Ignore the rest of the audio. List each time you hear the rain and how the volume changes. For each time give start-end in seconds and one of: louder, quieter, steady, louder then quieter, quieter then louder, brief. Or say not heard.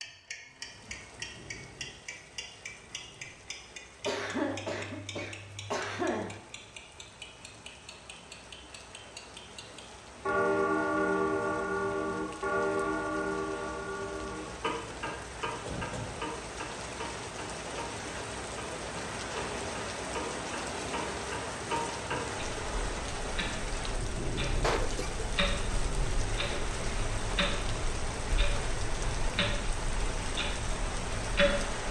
0.0-31.8 louder.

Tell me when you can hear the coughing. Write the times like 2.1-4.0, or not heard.
4.0-6.4, 15.7-16.1, 24.6-25.2.